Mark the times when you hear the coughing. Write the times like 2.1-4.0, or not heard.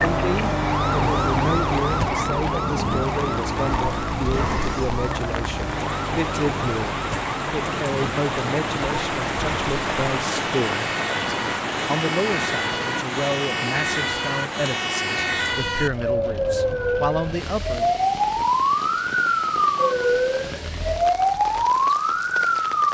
not heard.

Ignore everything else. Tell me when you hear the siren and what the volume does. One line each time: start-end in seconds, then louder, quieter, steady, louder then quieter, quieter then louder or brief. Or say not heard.
0.0-22.8 quieter then louder.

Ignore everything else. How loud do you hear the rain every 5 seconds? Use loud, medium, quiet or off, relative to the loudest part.
medium, loud, loud, medium, medium.